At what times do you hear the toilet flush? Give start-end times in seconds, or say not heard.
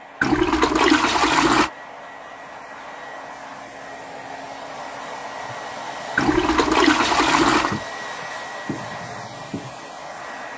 0.2-1.7, 6.2-7.8.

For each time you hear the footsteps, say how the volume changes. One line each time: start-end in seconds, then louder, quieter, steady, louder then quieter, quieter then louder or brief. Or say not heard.
not heard.